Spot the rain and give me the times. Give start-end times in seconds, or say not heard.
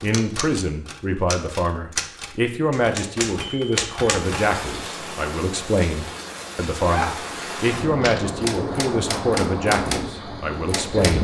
4.1-11.1.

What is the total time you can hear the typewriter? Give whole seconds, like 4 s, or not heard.
8 s.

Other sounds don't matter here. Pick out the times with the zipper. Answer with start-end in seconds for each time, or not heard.
6.8-7.3.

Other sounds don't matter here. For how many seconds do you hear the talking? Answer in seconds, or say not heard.
11 s.